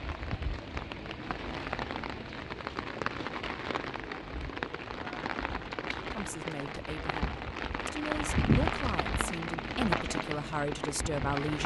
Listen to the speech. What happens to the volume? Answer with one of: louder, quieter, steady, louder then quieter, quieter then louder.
louder.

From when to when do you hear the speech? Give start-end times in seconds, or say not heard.
6.2-11.6.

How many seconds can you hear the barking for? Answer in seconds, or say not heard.
not heard.